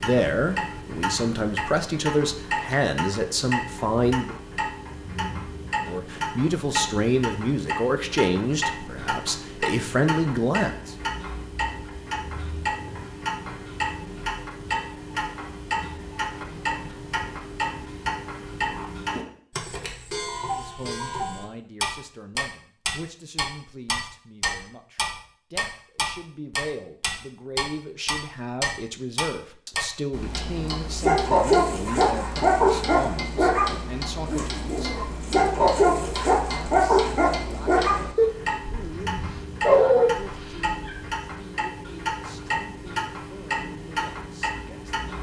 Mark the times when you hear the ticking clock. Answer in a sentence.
The ticking clock can be heard from 0.0 to 45.1 s.